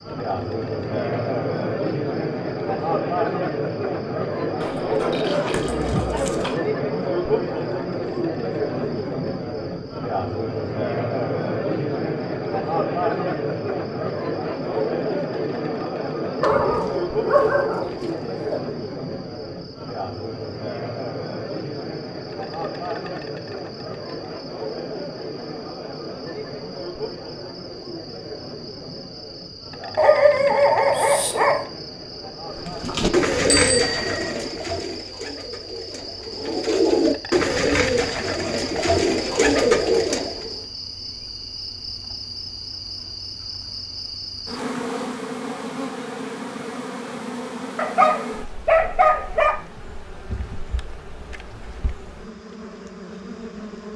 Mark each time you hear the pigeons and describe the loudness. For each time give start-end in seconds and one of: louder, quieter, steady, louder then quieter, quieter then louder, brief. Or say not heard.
32.5-40.6 quieter then louder.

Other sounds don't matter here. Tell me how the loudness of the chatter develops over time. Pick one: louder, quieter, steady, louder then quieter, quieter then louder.
quieter.